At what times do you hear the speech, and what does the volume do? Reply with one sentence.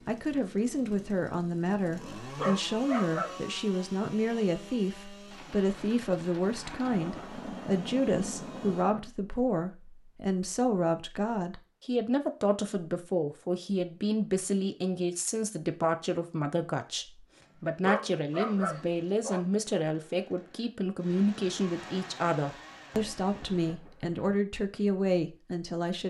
The speech can be heard from 0.1 to 26.0 s, at a steady volume.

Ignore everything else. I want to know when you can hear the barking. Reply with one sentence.
The barking can be heard from 2.4 to 3.4 s and from 17.8 to 19.4 s.